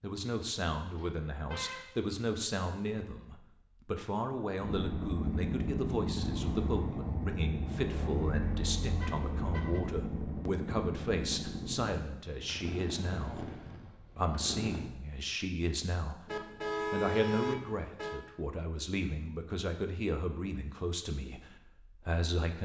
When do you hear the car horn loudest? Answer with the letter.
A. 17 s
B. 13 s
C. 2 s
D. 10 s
A.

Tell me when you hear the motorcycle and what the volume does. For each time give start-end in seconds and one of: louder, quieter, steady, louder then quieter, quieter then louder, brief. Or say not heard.
4.6-14.8 quieter.